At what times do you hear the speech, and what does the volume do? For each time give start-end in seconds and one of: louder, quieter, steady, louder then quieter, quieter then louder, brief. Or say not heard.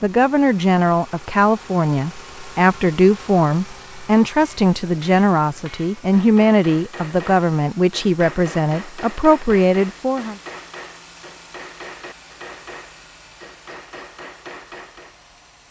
0.0-10.3 steady.